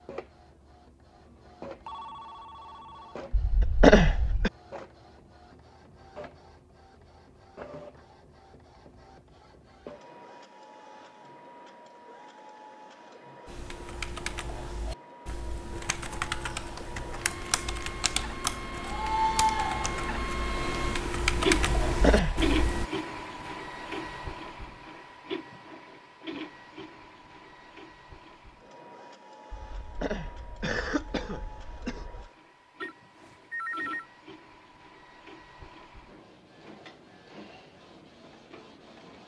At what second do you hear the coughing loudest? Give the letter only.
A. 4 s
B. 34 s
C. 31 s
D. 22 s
A.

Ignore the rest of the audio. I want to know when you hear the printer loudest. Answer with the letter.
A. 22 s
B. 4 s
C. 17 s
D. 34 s
A.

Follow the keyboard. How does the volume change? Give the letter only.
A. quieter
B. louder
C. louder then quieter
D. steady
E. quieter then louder
B.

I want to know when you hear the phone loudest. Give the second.
34 s.